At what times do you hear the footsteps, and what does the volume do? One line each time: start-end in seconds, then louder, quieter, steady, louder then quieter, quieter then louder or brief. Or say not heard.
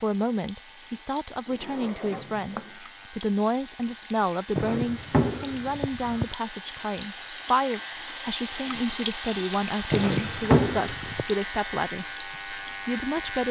not heard.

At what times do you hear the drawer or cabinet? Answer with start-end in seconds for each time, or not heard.
1.4-2.7, 4.5-6.3, 9.9-11.2.